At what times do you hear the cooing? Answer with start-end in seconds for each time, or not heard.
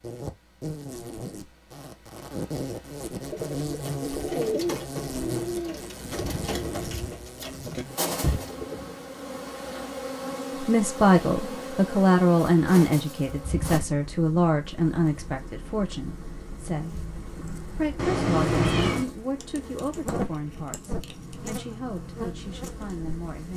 3.1-8.9.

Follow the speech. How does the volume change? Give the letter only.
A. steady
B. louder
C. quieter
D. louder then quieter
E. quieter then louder
C.